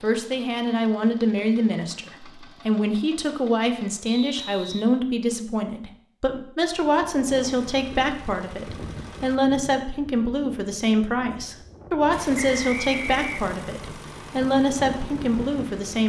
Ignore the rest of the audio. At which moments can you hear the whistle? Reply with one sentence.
You can hear the whistle from 4.0 to 5.3 s and from 12.3 to 13.5 s.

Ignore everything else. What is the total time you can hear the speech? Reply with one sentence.
The speech can be heard for 16 seconds in total.